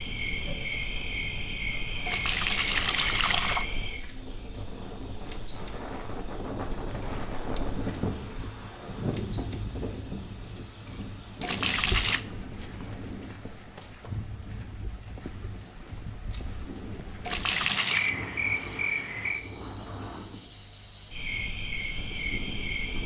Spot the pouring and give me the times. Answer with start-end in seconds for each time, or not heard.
2.0-3.6, 11.4-12.2, 17.2-18.1.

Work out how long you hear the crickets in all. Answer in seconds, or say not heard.
23 s.